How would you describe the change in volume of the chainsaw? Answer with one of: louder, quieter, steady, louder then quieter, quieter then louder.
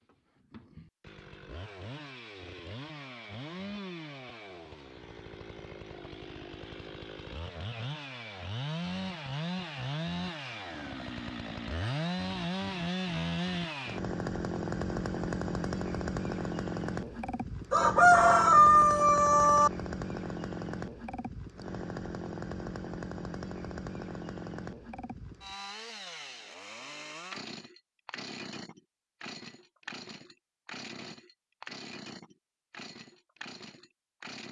louder then quieter.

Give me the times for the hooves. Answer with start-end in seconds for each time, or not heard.
not heard.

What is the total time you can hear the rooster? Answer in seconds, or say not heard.
2 s.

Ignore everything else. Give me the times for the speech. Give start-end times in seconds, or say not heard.
not heard.